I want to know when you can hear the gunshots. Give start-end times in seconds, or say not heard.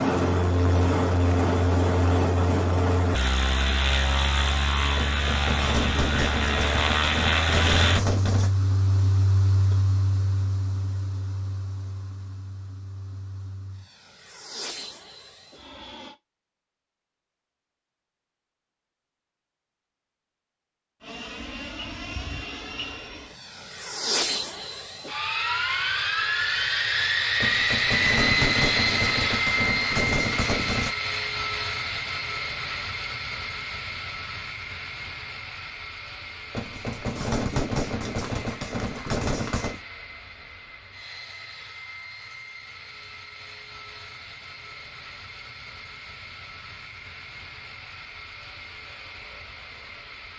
5.0-8.5, 27.4-30.9, 36.5-39.8.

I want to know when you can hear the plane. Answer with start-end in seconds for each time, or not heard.
0.0-16.1, 21.0-50.3.